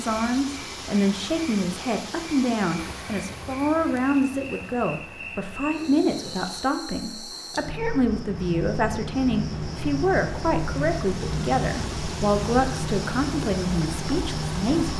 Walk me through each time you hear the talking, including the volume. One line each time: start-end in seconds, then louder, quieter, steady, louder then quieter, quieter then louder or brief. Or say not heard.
0.0-14.9 steady.